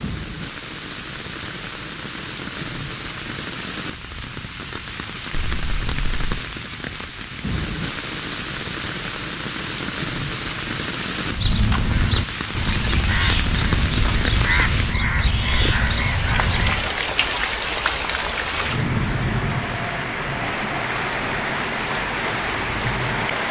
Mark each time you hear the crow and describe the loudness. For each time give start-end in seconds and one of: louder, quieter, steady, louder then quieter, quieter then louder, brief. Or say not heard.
11.2-16.9 steady.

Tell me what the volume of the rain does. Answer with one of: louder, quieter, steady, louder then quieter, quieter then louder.
louder.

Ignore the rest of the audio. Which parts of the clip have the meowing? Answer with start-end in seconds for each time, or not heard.
5.3-6.4.